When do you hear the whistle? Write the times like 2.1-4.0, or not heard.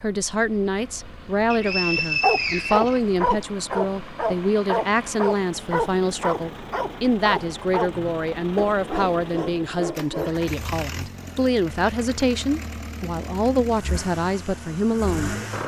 1.5-3.5.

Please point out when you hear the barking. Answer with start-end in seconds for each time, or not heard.
1.9-10.4.